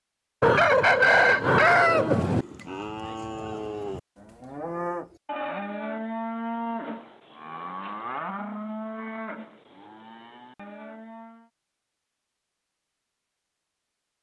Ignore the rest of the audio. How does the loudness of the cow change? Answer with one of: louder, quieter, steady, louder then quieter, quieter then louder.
quieter.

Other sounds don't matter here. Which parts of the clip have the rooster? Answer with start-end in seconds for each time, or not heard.
0.4-2.5.